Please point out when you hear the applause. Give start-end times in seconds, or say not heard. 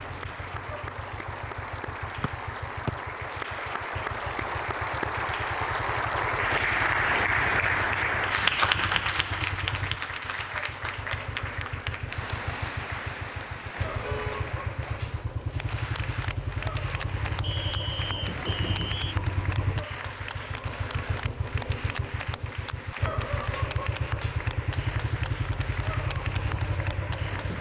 0.0-27.5.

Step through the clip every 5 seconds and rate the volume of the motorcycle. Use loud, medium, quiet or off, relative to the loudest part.
medium, medium, medium, loud, loud, loud.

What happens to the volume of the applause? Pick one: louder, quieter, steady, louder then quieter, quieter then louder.
louder then quieter.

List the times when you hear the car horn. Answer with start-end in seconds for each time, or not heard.
13.8-14.5.